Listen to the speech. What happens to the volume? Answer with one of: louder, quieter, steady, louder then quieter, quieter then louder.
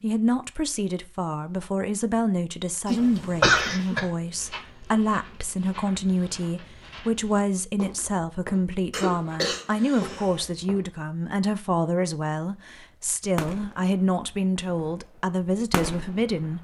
steady.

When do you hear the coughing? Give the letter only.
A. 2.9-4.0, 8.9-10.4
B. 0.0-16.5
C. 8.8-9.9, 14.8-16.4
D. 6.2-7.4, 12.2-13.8
A.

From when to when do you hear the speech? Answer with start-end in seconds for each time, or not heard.
0.0-16.5.